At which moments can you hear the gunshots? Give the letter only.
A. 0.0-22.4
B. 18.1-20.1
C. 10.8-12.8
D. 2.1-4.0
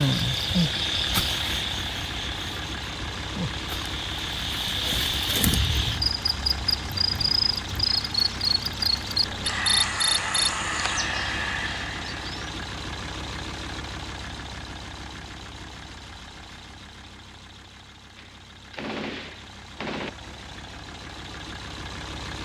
B.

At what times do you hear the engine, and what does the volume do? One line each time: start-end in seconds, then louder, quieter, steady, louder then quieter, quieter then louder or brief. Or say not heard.
0.0-22.4 quieter.